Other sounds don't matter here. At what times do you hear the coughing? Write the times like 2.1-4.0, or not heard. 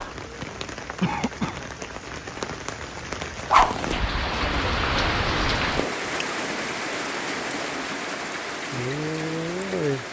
1.0-1.6.